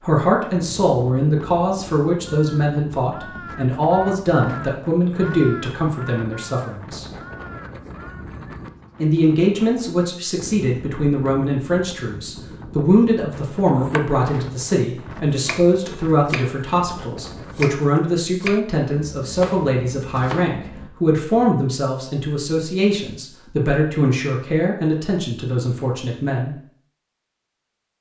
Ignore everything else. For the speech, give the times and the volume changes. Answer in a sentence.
You can hear the speech from 0.0 to 7.0 s, at a steady volume; and from 9.0 to 26.6 s, at a steady volume.